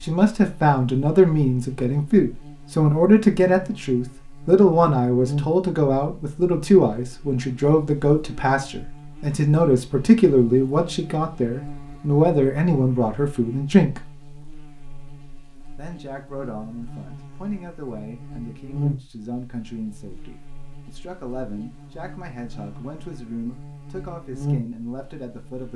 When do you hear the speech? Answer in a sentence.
The speech can be heard from 0.0 to 14.0 s and from 15.8 to 25.7 s.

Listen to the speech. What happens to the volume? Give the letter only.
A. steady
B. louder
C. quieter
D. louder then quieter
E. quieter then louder
C.